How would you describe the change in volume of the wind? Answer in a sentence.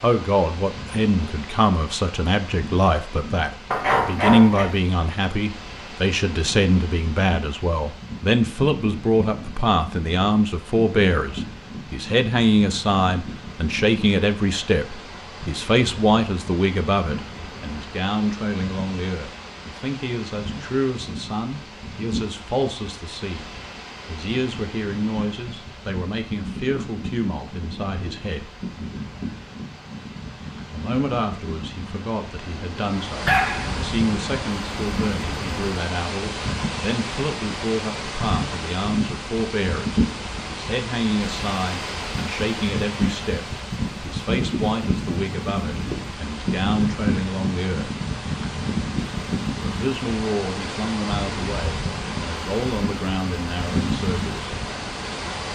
The volume of the wind goes up.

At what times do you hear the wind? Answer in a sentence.
You can hear the wind from 0.0 to 55.4 s.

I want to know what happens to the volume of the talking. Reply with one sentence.
The volume of the talking goes down.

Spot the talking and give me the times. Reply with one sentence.
The talking can be heard from 0.0 to 28.5 s, from 30.7 to 48.0 s and from 49.5 to 54.5 s.